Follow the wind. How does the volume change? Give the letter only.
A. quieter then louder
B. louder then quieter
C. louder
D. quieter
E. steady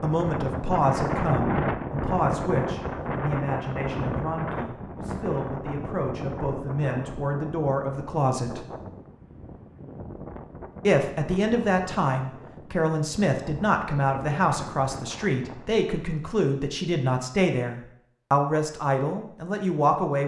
D.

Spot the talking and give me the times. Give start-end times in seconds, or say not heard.
0.0-8.7, 10.8-20.2.